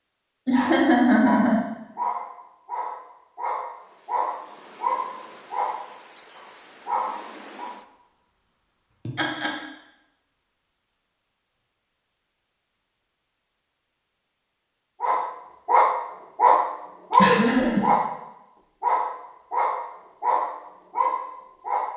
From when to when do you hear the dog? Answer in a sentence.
The dog can be heard from 0.5 to 7.7 s, from 15.0 to 18.1 s and from 18.8 to 21.9 s.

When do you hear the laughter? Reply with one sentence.
The laughter can be heard from 0.5 to 1.6 s, from 9.1 to 9.5 s and from 17.1 to 17.9 s.